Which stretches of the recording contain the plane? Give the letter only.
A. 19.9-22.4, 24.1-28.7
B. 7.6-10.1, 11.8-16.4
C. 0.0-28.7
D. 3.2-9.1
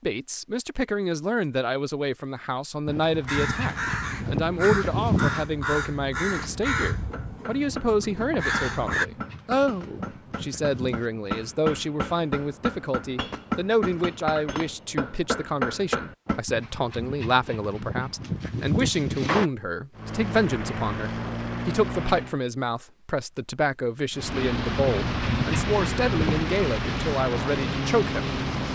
A.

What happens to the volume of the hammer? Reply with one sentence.
The volume of the hammer goes up.